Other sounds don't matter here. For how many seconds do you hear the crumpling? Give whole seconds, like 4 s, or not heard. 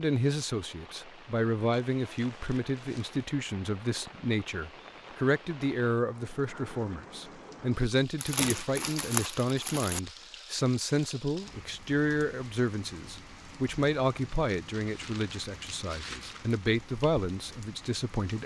5 s.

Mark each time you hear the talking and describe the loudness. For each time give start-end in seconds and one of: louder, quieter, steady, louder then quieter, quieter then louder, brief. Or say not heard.
0.0-18.4 steady.